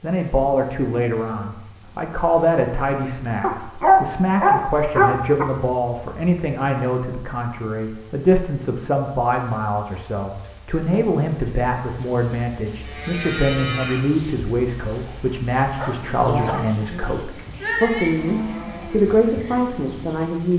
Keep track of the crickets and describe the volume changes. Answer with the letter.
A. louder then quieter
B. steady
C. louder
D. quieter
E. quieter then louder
C.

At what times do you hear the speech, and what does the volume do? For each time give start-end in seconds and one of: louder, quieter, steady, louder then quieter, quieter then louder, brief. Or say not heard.
0.0-20.5 steady.